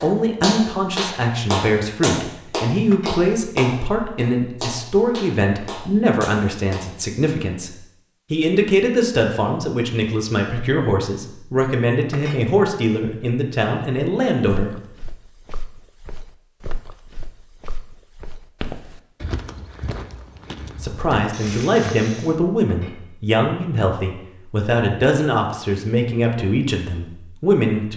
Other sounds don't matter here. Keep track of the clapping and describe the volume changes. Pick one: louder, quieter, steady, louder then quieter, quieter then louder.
quieter.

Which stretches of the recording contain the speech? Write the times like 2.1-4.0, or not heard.
0.0-14.7, 20.8-27.9.